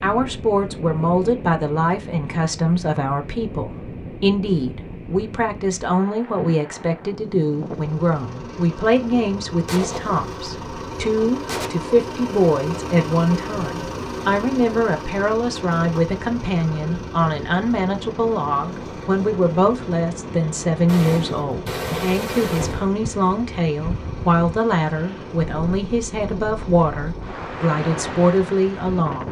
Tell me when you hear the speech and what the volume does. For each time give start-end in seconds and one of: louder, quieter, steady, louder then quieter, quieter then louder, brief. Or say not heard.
0.0-29.2 steady.